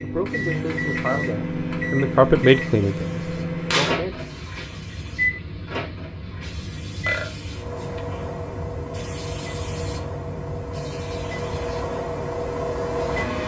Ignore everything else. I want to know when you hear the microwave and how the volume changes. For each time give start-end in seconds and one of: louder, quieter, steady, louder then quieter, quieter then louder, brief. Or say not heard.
0.0-13.4 quieter then louder.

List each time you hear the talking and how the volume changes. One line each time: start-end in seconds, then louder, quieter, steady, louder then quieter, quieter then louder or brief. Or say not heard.
0.0-4.2 louder then quieter.